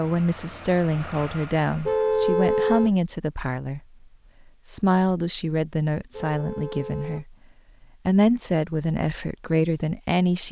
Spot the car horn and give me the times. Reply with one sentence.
You can hear the car horn from 1.8 to 2.9 s and from 6.1 to 7.2 s.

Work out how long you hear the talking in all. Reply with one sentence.
You can hear the talking for 9 seconds altogether.